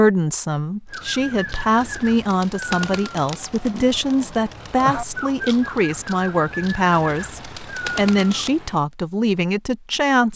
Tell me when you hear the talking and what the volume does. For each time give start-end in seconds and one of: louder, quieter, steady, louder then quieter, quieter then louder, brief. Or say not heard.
0.0-10.3 steady.